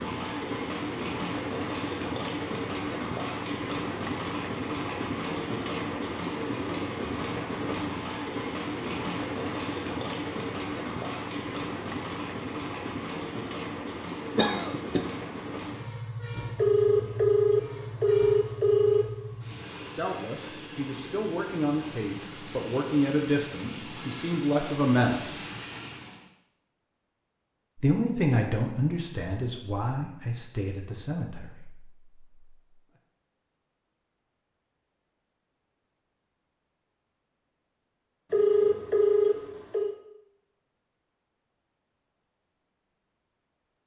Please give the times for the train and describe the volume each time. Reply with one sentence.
The train can be heard from 0.0 to 26.3 s, getting quieter.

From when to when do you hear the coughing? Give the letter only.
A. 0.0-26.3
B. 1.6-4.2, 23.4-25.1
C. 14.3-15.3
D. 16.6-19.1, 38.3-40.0
C.